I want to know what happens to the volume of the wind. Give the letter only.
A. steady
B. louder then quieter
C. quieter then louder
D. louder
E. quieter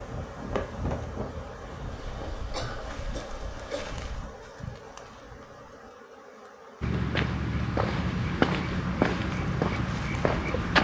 E.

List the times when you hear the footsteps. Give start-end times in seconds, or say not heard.
6.8-10.7.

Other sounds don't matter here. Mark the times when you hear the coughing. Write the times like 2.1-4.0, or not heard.
2.5-3.9.